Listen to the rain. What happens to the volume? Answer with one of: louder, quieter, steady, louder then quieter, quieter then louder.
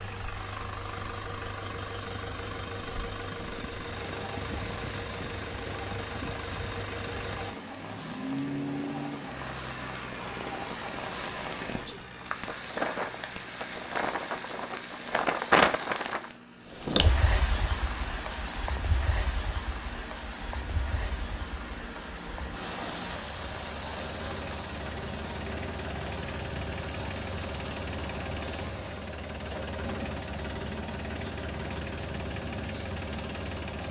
louder then quieter.